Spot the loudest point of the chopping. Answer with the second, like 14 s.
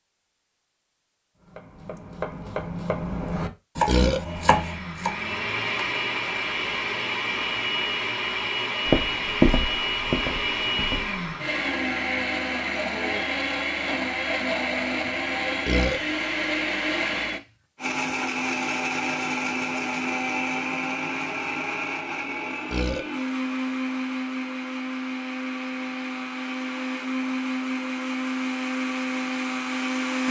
4 s.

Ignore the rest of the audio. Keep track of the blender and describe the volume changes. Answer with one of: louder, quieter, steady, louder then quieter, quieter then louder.
steady.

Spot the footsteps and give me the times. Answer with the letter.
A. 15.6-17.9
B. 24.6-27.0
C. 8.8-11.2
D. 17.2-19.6
C.